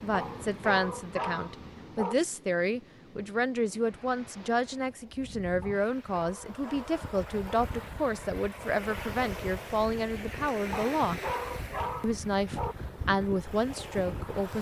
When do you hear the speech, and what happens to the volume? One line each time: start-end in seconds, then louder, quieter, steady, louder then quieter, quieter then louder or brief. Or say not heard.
0.0-11.2 steady
12.0-14.5 brief.